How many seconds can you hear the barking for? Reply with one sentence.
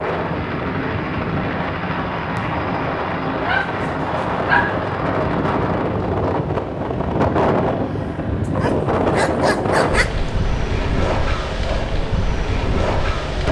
You can hear the barking for 3 seconds altogether.